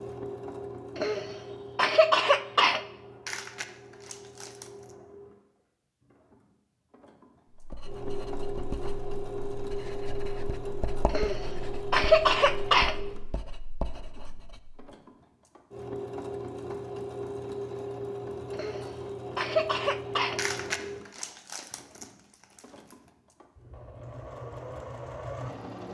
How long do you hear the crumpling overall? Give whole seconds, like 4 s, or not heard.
4 s.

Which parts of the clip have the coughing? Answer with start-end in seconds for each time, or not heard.
0.9-2.8, 11.1-12.9, 18.5-20.4.